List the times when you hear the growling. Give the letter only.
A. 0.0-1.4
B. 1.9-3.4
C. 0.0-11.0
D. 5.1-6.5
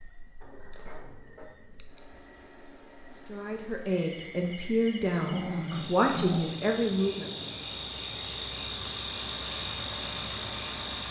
D.